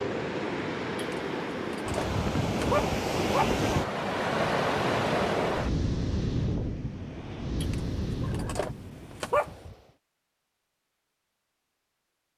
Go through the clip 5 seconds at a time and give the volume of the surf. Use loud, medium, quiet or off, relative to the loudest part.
loud, loud, off.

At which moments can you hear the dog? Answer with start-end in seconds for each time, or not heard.
0.9-3.5, 7.6-9.5.